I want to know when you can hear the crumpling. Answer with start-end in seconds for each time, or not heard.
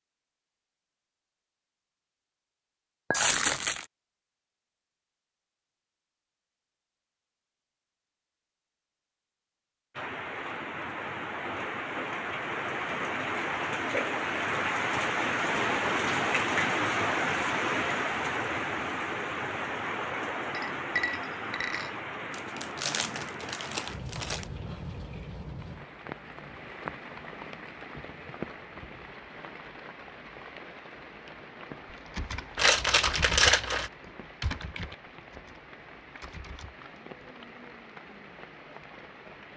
3.1-3.9, 22.3-24.4, 32.5-33.9.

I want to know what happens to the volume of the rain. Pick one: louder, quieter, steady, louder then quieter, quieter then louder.
quieter.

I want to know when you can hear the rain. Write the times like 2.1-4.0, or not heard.
9.9-39.5.